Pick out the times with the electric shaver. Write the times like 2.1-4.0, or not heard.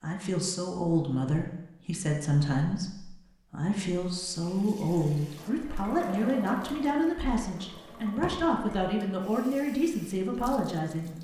not heard.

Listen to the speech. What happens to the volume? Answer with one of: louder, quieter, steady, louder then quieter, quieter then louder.
steady.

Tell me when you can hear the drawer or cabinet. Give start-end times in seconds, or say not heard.
7.8-8.4.